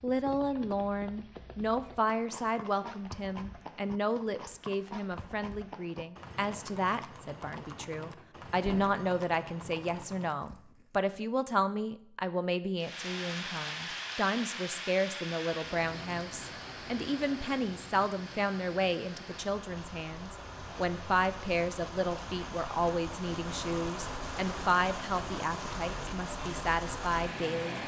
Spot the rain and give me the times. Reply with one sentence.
You can hear the rain from 12.8 to 27.8 s.